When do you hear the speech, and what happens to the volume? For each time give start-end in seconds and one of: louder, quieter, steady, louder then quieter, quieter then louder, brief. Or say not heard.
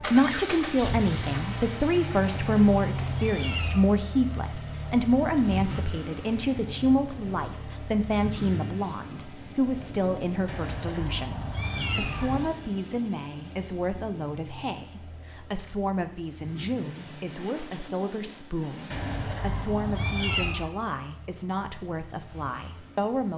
0.0-23.3 quieter.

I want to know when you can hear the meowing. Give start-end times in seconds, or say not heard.
2.1-3.9, 10.4-12.5, 18.9-20.7.